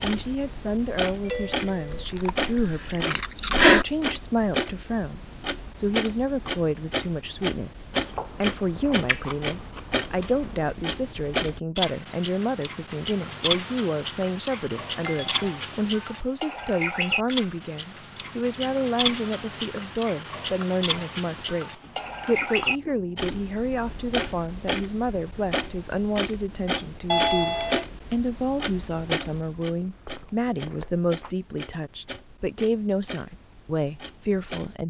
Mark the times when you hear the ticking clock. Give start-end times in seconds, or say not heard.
0.0-34.8.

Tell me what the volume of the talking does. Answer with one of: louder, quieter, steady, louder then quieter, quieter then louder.
steady.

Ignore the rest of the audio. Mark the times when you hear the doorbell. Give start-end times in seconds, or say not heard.
1.2-2.0, 15.0-15.6, 27.1-27.9.